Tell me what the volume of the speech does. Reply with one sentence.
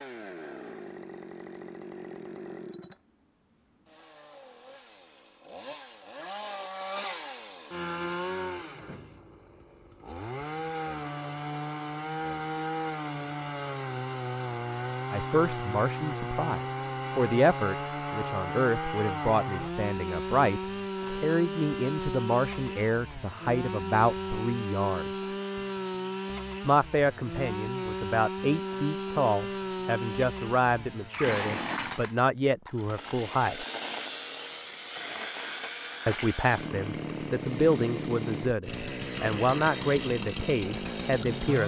The loudness of the speech stays about the same.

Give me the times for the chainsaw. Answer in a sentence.
You can hear the chainsaw from 0.0 to 41.6 s.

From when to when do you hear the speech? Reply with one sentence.
You can hear the speech from 15.1 to 25.4 s, from 26.6 to 33.6 s and from 36.0 to 41.6 s.